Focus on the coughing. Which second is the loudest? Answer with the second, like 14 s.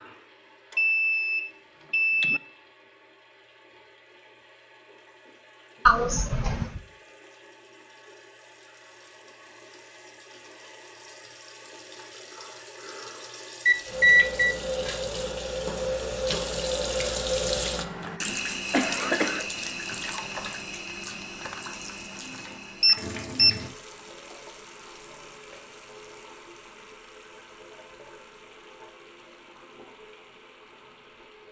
6 s.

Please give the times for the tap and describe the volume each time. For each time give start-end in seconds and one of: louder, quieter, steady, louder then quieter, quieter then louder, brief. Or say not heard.
0.0-31.4 louder then quieter.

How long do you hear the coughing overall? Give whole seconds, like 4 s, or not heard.
3 s.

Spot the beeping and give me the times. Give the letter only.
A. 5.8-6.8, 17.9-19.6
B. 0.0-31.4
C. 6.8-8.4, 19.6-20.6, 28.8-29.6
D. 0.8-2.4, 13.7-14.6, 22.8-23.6
D.